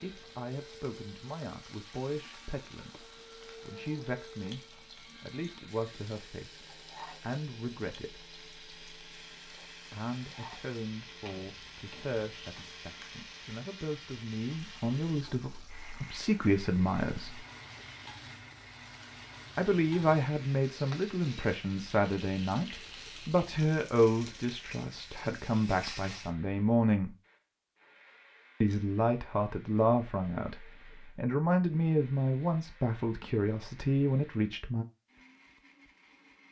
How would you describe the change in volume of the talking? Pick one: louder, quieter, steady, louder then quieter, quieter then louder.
louder.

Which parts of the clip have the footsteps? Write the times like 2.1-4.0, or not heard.
not heard.